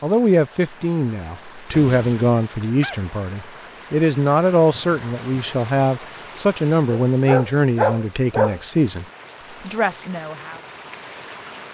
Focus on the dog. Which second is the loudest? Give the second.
8 s.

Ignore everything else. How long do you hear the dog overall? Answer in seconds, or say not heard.
3 s.